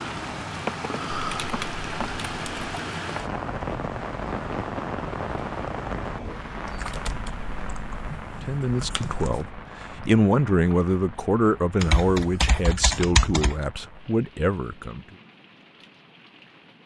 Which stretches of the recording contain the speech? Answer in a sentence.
The speech can be heard from 8.4 to 15.2 s.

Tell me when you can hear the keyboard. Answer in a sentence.
You can hear the keyboard from 1.1 to 2.8 s, from 6.7 to 9.4 s and from 11.8 to 13.6 s.